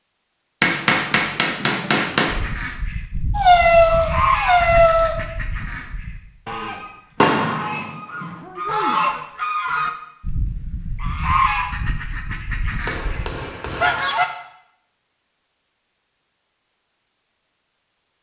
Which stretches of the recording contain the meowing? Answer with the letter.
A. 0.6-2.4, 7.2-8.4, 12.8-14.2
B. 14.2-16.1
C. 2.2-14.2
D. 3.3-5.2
D.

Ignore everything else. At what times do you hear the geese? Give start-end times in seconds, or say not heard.
2.2-14.2.